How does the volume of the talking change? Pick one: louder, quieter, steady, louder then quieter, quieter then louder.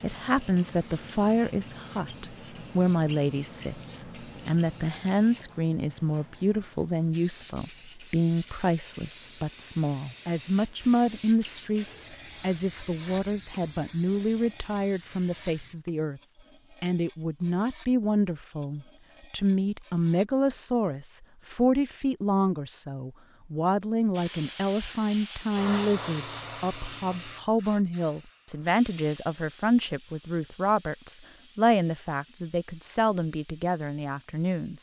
steady.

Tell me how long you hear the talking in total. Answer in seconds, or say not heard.
34 s.